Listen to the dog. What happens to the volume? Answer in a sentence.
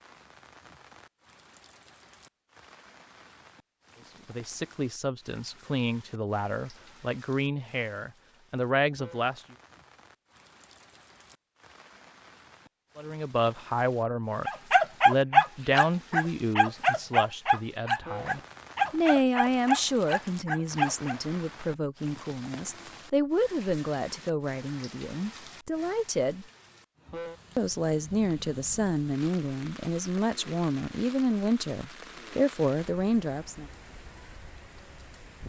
The loudness of the dog goes down.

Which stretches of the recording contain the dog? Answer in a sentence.
The dog can be heard from 14.4 to 21.2 s.